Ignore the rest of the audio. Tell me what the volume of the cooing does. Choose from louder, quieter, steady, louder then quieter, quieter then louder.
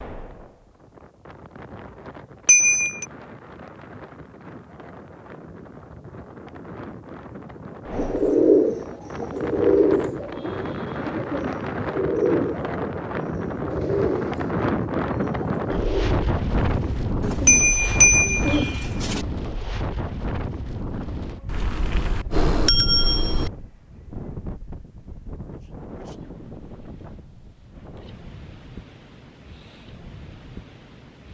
quieter.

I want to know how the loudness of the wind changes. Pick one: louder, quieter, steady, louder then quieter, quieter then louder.
louder then quieter.